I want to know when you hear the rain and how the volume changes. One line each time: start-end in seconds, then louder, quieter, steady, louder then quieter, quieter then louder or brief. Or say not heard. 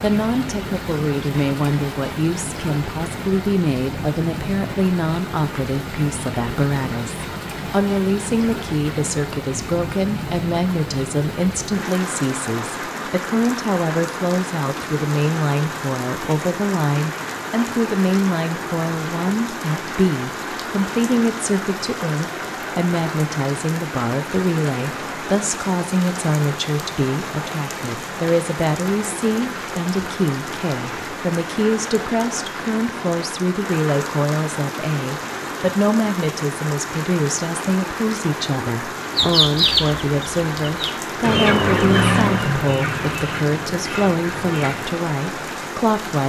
0.0-46.2 steady.